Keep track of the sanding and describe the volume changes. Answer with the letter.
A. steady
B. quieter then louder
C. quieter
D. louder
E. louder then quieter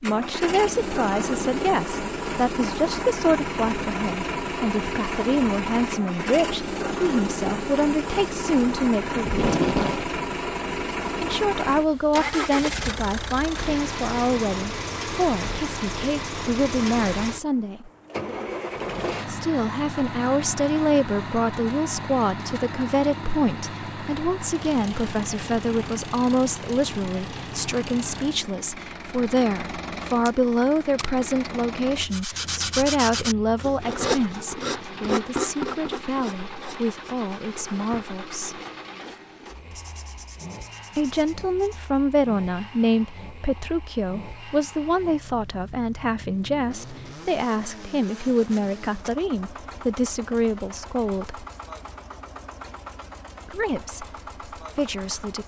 C.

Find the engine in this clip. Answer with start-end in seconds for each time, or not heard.
0.0-55.4.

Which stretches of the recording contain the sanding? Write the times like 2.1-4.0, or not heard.
32.0-41.9.